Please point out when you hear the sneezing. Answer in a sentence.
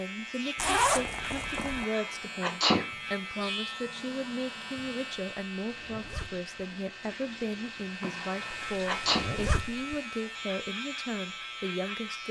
The sneezing can be heard from 1.6 to 2.9 s and from 8.0 to 9.2 s.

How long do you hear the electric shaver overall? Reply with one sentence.
The electric shaver can be heard for 12 seconds in total.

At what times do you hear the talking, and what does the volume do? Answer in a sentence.
The talking can be heard from 0.0 to 12.2 s, at a steady volume.